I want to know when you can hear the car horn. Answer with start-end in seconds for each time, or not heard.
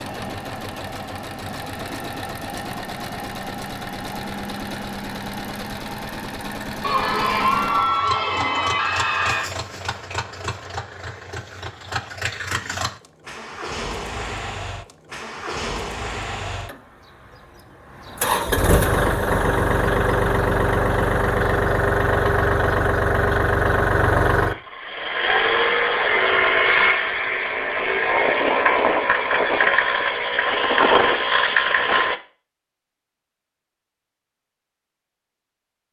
not heard.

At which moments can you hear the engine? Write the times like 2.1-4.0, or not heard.
0.0-32.1.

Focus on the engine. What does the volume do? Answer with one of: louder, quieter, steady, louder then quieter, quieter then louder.
louder.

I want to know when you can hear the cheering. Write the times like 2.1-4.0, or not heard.
6.8-9.5.